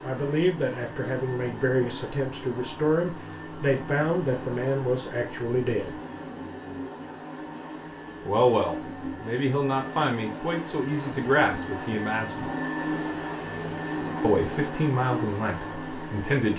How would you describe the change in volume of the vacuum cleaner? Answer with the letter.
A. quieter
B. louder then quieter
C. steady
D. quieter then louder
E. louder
E.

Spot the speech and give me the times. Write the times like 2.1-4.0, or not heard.
0.0-6.0, 8.2-12.5, 14.2-16.5.